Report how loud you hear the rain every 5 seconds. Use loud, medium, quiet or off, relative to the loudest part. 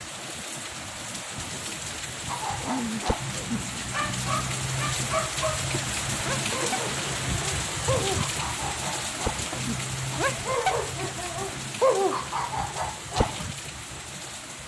loud, loud, medium.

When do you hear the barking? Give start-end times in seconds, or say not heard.
2.2-13.5.